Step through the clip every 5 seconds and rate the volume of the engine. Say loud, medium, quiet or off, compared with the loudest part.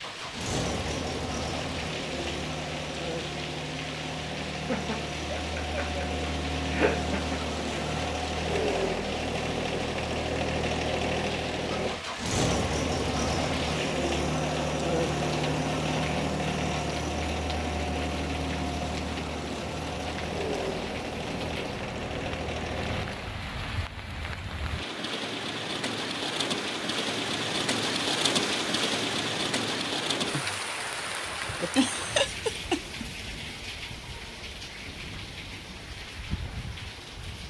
medium, loud, loud, loud, medium, off, off, off.